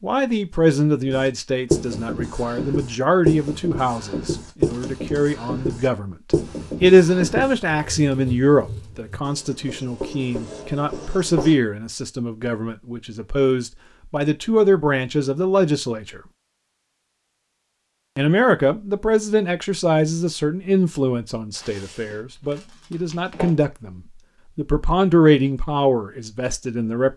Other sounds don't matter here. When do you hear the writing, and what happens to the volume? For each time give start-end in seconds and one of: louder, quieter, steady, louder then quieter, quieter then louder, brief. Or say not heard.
1.1-11.6 quieter.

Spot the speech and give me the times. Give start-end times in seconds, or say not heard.
0.0-16.2, 18.1-27.1.